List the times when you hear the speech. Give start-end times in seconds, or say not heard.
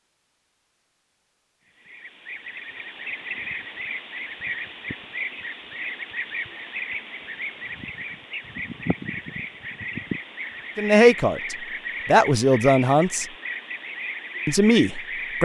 10.8-13.2, 14.4-15.4.